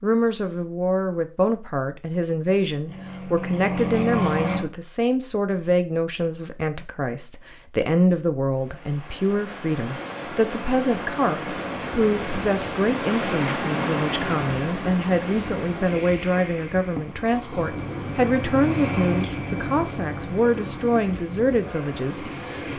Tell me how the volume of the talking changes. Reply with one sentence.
The volume of the talking stays about the same.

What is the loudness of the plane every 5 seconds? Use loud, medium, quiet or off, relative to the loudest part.
loud, off, off, loud, medium.